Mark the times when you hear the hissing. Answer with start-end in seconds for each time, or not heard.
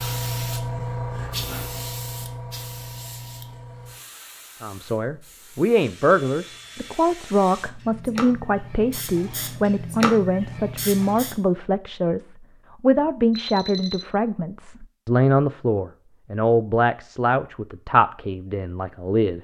0.0-11.4.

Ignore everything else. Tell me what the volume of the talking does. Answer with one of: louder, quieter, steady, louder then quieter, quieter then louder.
steady.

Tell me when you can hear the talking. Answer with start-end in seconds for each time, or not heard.
4.6-19.3.